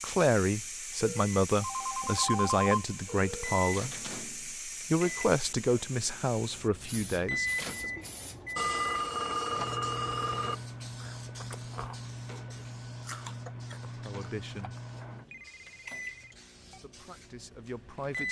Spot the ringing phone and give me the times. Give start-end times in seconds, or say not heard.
1.0-3.6, 8.6-10.6, 14.9-16.8.